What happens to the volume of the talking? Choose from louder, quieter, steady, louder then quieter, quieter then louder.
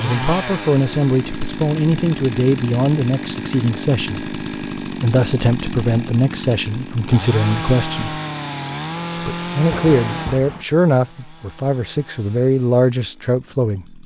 steady.